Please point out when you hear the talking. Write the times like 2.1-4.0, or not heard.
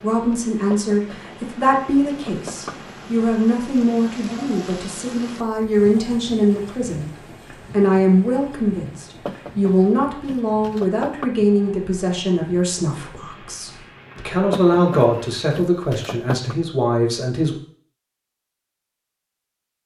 0.0-17.6.